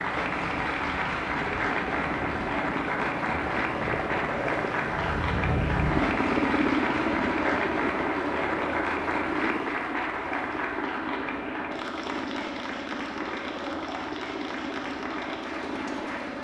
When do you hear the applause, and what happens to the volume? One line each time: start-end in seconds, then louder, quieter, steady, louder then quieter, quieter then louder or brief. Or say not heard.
0.0-16.3 quieter.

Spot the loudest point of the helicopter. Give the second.
6 s.